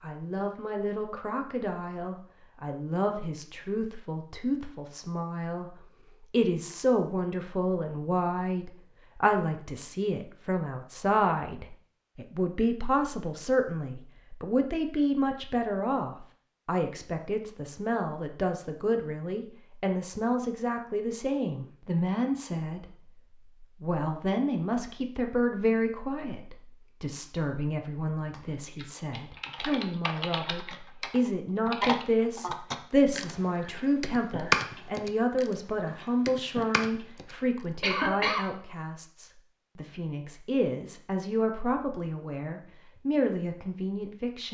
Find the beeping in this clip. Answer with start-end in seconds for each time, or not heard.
not heard.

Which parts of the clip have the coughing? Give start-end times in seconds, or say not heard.
37.8-38.5.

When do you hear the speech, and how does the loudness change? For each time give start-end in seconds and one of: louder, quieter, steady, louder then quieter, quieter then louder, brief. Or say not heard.
0.0-44.4 steady.